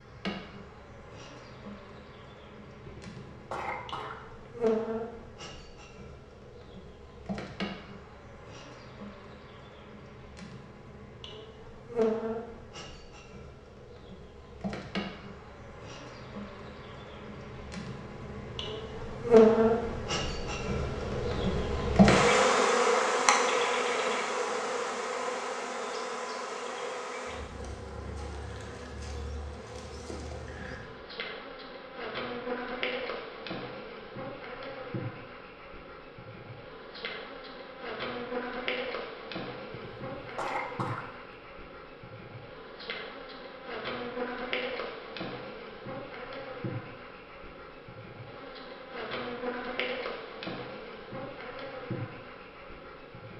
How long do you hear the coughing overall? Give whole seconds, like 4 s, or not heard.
3 s.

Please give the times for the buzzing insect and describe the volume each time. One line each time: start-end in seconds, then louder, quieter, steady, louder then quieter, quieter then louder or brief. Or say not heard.
0.0-53.3 louder then quieter.